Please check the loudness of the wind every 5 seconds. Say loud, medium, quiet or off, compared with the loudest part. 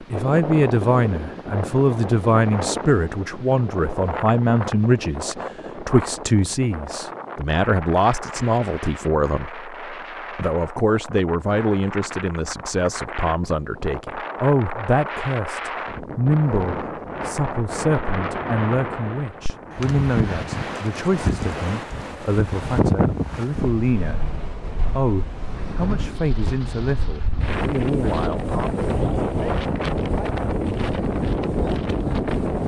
medium, medium, medium, medium, loud, loud, loud.